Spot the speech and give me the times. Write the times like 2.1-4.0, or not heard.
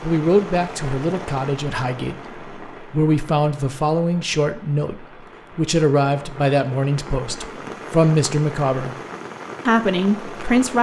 0.0-8.9, 9.7-10.7.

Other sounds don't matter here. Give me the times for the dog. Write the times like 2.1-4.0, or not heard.
not heard.